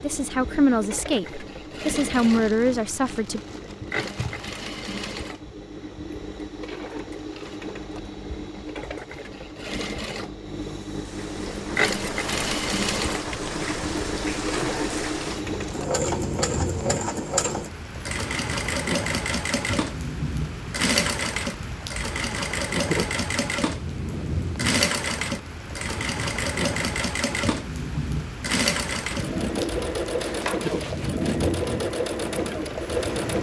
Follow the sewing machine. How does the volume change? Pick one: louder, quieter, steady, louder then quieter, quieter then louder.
louder.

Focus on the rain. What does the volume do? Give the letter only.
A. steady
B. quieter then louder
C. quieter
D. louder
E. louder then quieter
A.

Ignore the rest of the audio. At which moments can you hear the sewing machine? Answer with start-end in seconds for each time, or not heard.
0.0-33.3.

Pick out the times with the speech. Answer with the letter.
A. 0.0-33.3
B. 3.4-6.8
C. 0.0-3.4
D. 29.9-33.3
C.